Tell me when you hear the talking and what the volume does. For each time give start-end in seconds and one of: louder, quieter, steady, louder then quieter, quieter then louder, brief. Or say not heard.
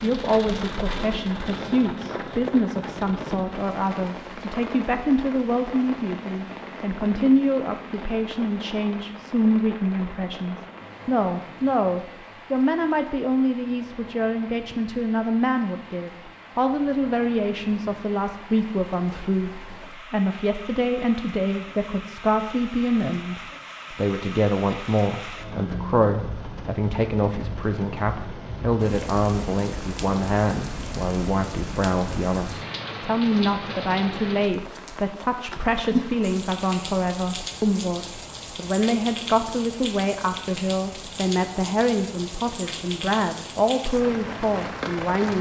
0.0-45.3 steady.